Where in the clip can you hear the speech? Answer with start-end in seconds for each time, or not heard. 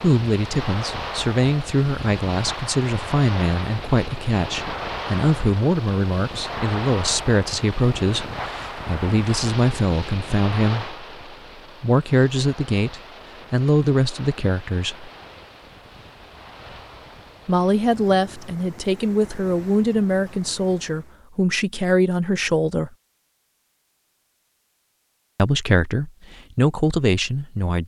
0.0-10.9, 11.8-15.1, 17.4-22.9, 25.4-27.8.